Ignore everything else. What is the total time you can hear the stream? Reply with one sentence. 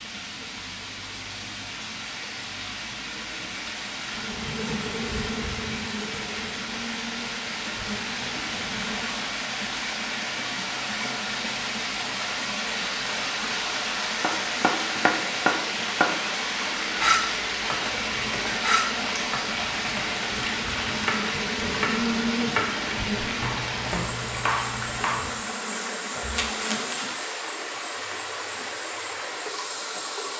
You can hear the stream for 30 seconds altogether.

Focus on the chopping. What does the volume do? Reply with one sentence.
The loudness of the chopping goes down.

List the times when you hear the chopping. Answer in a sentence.
The chopping can be heard from 14.2 to 25.3 s.